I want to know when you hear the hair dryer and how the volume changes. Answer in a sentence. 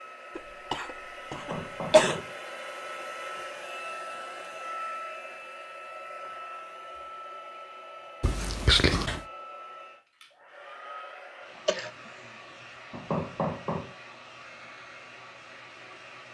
The hair dryer can be heard from 0.0 to 16.2 s, getting quieter.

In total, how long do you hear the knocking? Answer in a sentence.
The knocking can be heard for 2 seconds in total.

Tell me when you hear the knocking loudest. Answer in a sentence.
The loudest moment of the knocking is at 13 seconds.